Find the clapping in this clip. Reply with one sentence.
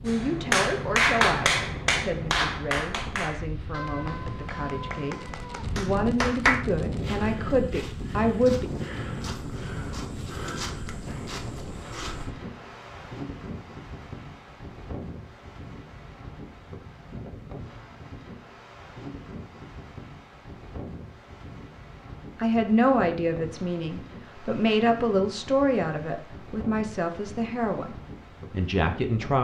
The clapping can be heard from 0.1 to 6.7 s.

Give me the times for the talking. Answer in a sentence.
The talking can be heard from 0.0 to 8.7 s and from 22.4 to 29.3 s.